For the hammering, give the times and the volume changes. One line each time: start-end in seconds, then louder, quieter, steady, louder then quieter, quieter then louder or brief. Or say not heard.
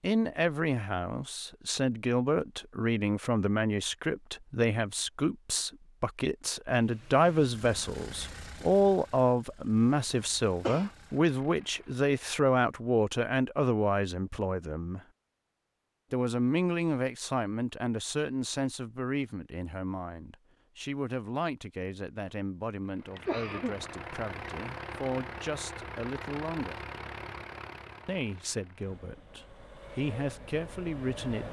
not heard.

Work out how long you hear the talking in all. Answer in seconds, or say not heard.
29 s.